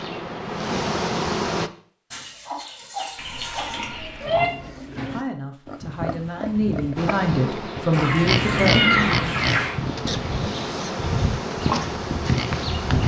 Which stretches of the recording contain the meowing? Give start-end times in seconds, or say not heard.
3.1-4.5, 8.2-9.3.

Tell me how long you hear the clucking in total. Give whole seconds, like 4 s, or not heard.
4 s.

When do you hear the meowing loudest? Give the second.
9 s.